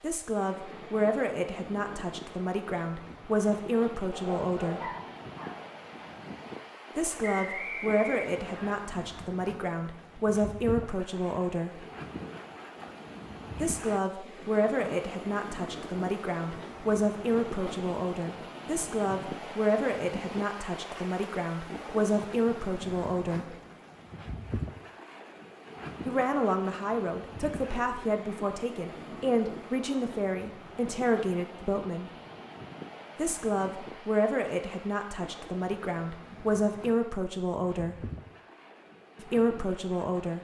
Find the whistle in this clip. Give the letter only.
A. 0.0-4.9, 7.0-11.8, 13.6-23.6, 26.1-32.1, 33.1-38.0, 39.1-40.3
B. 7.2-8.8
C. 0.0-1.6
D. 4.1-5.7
B.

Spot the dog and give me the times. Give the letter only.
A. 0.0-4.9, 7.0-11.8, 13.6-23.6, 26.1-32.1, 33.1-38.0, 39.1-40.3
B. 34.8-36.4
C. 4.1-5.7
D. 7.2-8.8
C.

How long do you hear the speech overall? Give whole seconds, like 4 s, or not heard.
32 s.